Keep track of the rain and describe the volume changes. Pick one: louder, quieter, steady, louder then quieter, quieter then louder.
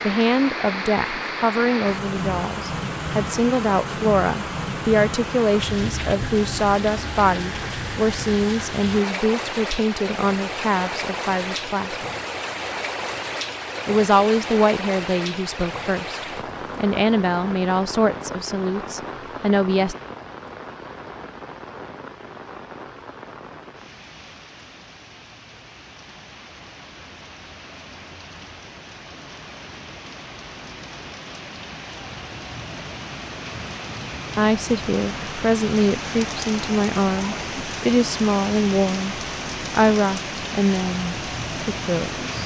quieter then louder.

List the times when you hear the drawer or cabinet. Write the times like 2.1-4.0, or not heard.
not heard.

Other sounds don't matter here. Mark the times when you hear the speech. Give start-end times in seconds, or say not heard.
0.0-12.1, 13.8-19.9, 34.4-42.4.